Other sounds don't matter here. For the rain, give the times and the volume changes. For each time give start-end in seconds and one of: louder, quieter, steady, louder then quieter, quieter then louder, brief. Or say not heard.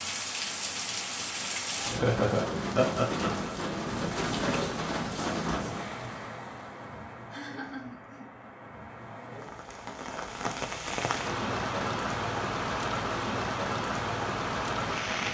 0.0-15.3 quieter then louder.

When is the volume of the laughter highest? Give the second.
2 s.